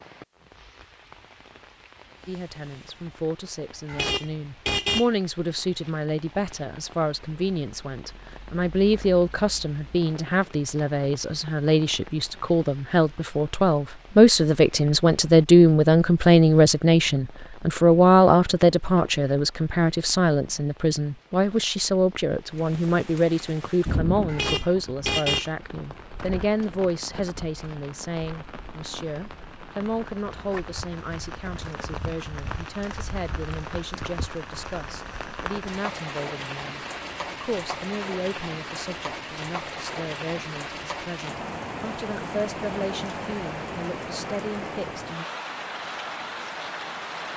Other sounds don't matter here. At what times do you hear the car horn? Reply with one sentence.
You can hear the car horn from 3.9 to 5.1 s and from 24.2 to 25.5 s.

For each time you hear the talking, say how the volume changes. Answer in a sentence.
The talking can be heard from 2.2 to 45.2 s, getting louder then quieter.